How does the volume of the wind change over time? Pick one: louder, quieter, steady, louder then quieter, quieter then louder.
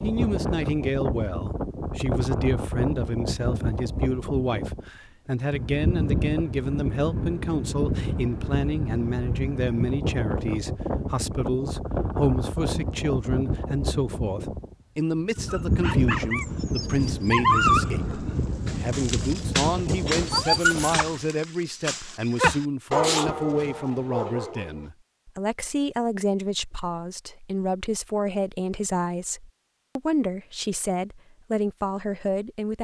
steady.